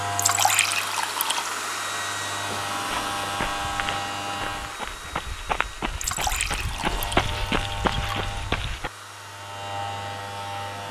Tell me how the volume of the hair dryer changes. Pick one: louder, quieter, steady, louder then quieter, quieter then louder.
quieter.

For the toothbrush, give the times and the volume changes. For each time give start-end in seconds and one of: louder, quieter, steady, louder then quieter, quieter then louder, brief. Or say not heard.
not heard.